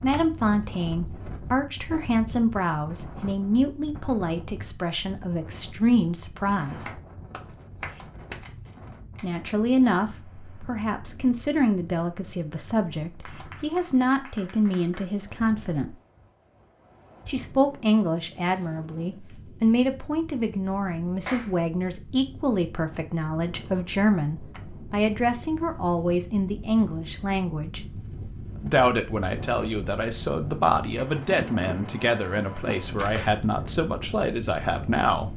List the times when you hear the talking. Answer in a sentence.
You can hear the talking from 0.0 to 6.9 s, from 9.2 to 15.9 s, from 17.2 to 27.8 s and from 28.6 to 35.3 s.